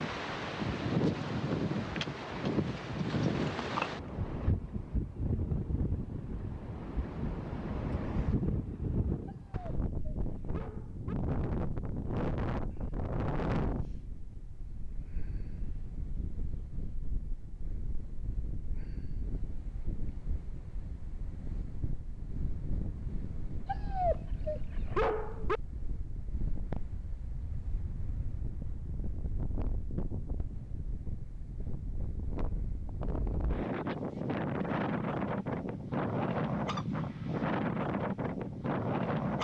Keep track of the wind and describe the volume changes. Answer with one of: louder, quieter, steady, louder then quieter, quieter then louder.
quieter then louder.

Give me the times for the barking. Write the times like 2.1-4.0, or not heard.
9.2-11.2, 23.6-25.6.